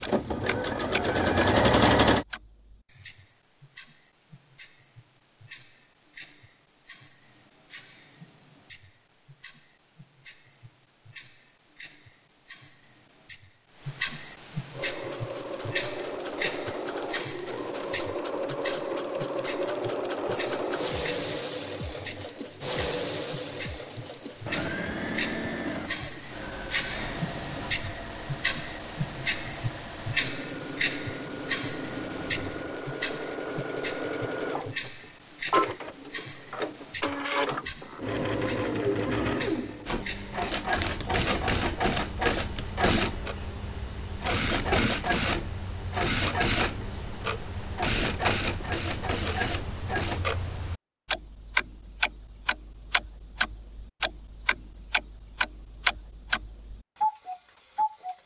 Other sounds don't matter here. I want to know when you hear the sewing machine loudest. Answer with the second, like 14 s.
2 s.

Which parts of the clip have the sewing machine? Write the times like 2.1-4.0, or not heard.
0.0-2.2, 14.7-50.2.